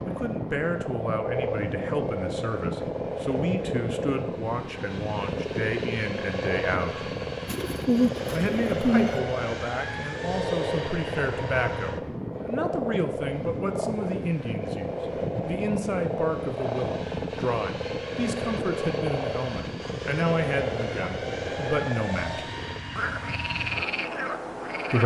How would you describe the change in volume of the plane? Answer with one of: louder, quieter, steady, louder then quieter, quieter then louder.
steady.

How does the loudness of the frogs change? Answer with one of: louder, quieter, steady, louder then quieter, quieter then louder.
steady.